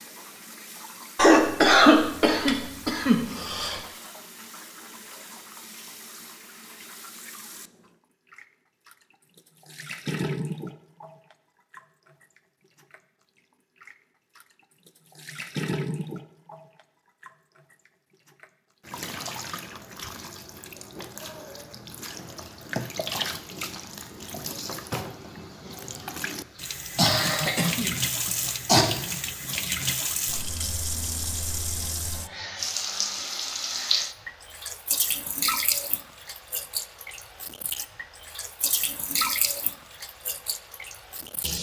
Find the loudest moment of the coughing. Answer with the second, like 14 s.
2 s.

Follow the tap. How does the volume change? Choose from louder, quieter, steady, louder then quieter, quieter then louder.
louder.